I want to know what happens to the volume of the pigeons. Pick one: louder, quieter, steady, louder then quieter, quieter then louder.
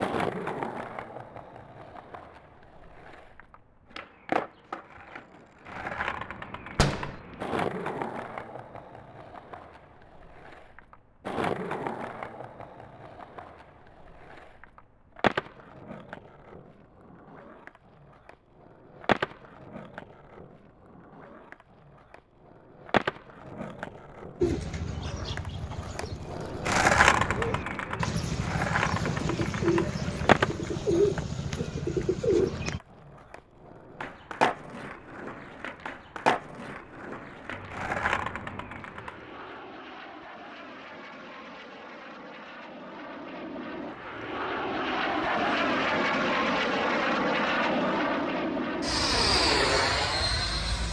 louder.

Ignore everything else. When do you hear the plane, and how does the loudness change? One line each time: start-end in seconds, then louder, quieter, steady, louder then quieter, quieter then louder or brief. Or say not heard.
37.5-50.8 louder.